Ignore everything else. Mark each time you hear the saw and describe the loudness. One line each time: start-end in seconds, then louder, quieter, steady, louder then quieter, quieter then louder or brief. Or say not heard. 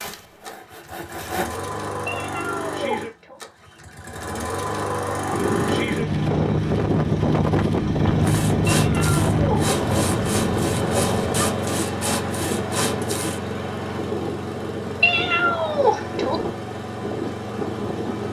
0.0-1.6 brief
8.2-13.4 steady.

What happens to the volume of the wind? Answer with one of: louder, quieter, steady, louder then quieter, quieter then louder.
quieter.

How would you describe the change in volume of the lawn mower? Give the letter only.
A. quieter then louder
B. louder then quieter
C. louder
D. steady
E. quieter
B.